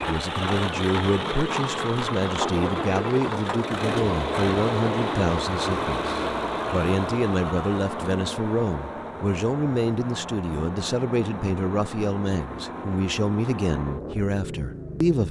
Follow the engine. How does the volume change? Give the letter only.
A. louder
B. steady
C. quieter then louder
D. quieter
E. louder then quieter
D.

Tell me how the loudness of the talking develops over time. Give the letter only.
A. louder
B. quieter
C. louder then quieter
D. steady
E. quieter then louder
D.